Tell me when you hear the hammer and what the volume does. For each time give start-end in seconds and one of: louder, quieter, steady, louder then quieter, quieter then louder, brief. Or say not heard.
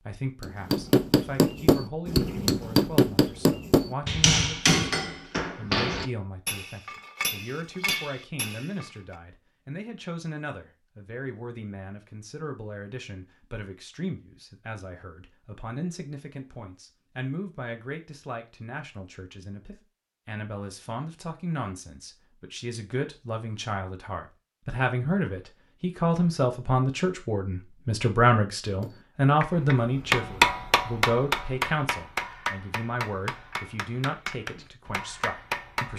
0.4-9.2 quieter
28.8-35.9 quieter.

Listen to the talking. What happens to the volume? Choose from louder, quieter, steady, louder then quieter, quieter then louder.
louder.